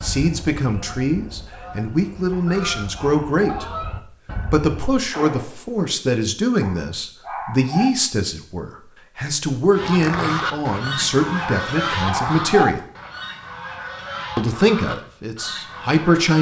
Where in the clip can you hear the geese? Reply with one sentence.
You can hear the geese from 0.0 to 5.1 s and from 9.7 to 16.3 s.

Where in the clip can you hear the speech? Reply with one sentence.
The speech can be heard from 0.0 to 3.6 s, from 4.5 to 12.8 s and from 14.3 to 16.3 s.